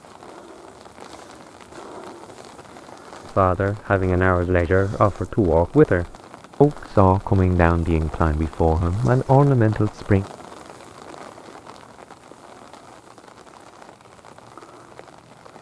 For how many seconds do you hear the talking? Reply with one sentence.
You can hear the talking for 7 seconds altogether.